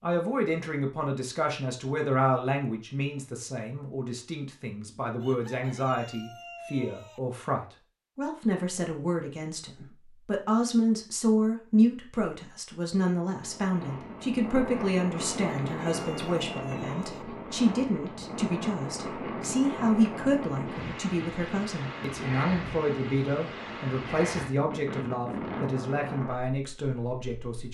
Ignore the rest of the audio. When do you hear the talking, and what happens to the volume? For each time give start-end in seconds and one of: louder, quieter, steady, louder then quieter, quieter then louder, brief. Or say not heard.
0.0-27.6 steady.